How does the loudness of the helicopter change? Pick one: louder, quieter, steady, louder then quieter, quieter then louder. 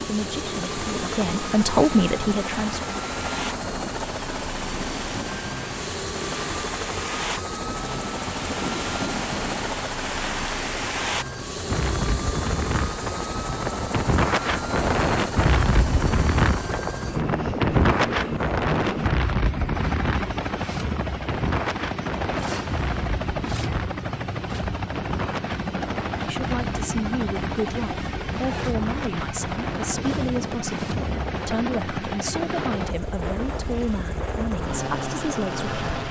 steady.